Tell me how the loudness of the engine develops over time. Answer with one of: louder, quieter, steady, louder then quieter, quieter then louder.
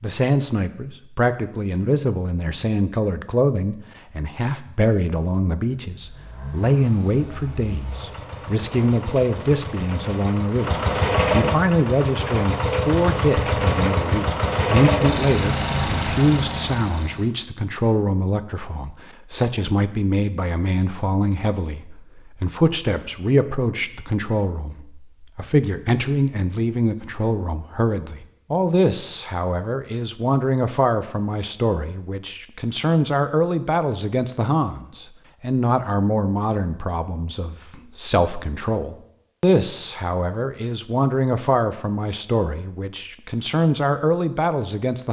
louder.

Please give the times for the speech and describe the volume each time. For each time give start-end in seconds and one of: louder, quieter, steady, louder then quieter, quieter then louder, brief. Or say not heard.
0.0-45.0 steady.